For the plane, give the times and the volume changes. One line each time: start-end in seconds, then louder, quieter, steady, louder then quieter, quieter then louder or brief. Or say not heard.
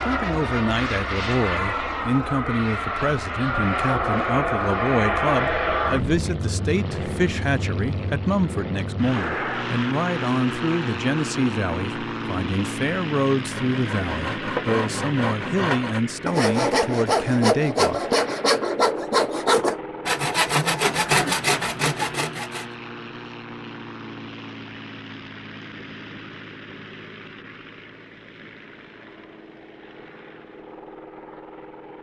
0.0-31.9 quieter.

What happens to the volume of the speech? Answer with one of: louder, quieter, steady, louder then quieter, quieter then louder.
steady.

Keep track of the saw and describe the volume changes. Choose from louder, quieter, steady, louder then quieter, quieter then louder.
louder.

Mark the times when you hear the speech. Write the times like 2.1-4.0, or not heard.
0.1-18.1.